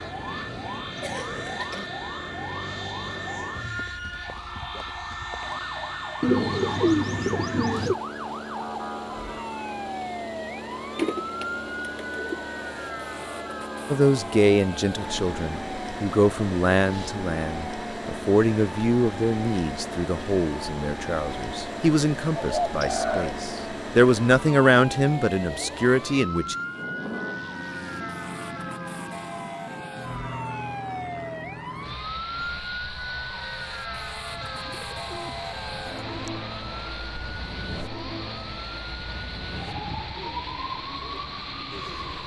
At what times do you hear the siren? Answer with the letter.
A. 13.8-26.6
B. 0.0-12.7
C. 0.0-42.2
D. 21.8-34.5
C.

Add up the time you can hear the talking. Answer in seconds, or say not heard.
13 s.